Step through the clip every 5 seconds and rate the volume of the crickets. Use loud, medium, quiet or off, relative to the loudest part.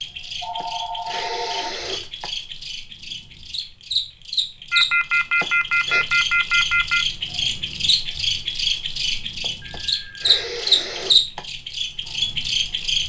medium, medium, loud.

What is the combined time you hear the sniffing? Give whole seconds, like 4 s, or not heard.
4 s.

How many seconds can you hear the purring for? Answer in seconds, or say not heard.
not heard.